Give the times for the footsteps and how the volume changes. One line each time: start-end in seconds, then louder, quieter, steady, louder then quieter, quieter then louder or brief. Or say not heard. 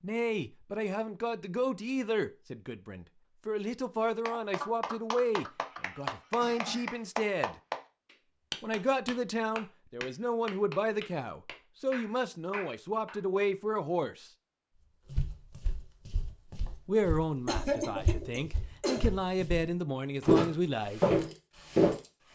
15.1-21.9 louder.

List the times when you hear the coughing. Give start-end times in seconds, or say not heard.
5.6-7.0, 17.4-19.1.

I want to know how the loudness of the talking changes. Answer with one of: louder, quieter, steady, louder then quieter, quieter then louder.
steady.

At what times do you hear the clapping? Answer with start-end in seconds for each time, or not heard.
4.0-13.2.